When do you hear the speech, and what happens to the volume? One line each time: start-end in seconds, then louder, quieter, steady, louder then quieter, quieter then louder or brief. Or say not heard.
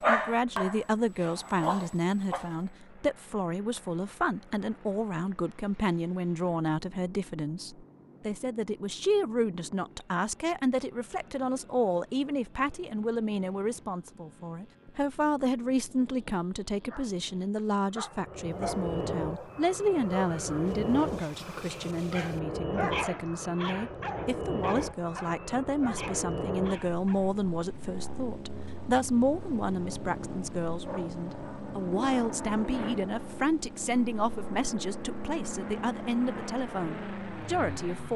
0.1-38.1 steady.